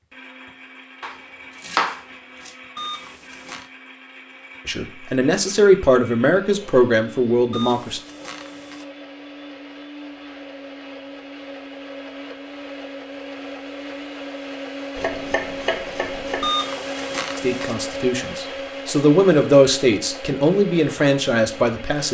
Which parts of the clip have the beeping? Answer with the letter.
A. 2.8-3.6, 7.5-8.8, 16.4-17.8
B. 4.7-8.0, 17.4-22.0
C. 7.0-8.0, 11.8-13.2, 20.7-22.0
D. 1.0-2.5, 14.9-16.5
A.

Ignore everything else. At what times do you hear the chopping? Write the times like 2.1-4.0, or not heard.
1.0-2.5, 14.9-16.5.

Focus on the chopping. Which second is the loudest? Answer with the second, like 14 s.
2 s.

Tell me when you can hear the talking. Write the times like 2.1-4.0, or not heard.
4.7-8.0, 17.4-22.0.